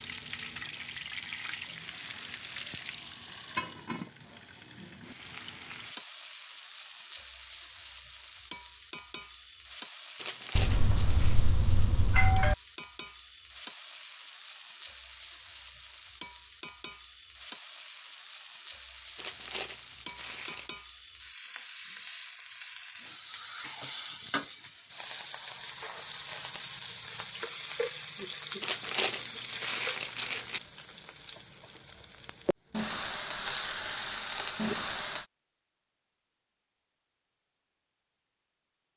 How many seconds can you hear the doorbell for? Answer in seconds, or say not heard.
2 s.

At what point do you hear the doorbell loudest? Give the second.
12 s.